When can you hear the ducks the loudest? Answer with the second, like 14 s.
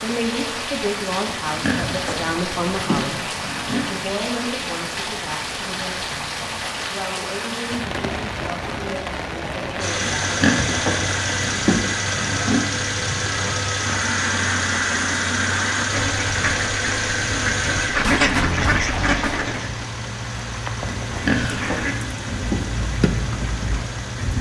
18 s.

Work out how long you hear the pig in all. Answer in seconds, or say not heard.
7 s.